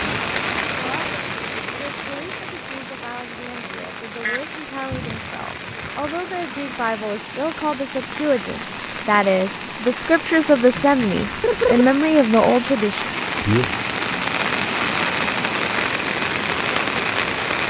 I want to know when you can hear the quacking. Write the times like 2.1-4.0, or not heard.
4.2-6.2, 10.7-11.8.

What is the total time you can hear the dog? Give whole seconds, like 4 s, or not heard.
not heard.